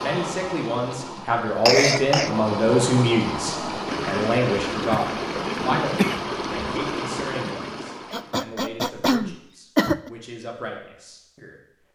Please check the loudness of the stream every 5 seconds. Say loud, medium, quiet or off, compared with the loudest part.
loud, loud, off.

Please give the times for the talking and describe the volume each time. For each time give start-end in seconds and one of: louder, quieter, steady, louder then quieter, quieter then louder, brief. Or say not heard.
0.0-11.9 quieter.